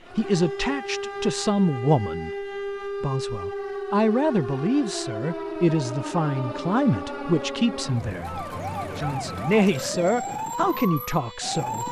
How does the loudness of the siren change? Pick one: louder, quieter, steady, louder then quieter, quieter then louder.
steady.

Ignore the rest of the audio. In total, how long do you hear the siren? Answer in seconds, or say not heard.
12 s.